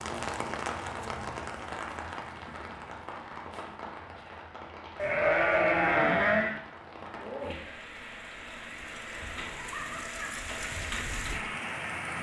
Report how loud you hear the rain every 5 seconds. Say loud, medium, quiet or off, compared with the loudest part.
loud, medium, loud.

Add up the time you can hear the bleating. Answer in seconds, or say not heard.
2 s.